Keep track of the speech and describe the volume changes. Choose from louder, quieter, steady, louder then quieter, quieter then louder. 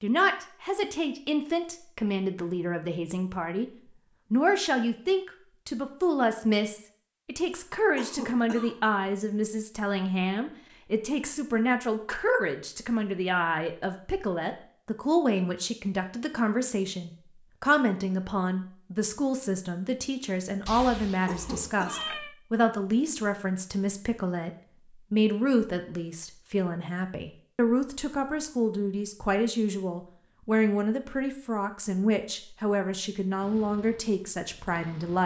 steady.